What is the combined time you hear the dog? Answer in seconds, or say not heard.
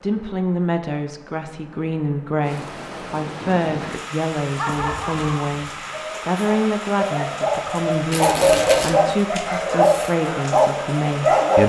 7 s.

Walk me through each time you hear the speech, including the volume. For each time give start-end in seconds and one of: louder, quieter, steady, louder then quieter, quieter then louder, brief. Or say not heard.
0.0-11.6 steady.